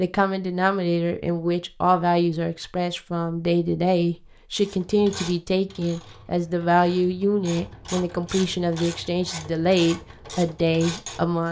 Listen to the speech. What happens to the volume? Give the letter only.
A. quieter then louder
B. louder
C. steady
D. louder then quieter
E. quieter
C.